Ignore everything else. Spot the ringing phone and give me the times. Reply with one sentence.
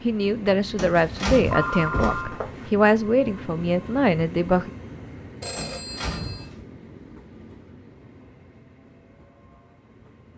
The ringing phone can be heard from 1.4 to 2.7 s and from 5.4 to 6.5 s.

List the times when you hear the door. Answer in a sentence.
You can hear the door from 0.8 to 2.2 s and from 5.5 to 6.6 s.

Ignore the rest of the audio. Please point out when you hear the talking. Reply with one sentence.
You can hear the talking from 0.0 to 4.7 s.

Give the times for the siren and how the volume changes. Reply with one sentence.
You can't hear the siren here.